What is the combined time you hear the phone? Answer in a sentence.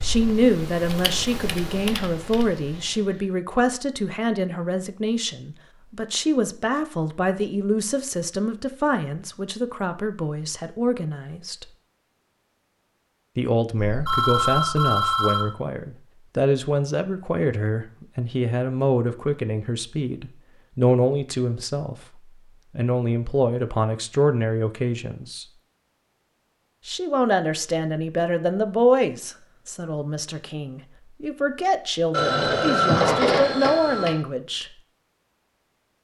The phone can be heard for 4 seconds in total.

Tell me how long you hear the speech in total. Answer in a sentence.
The speech can be heard for 32 seconds in total.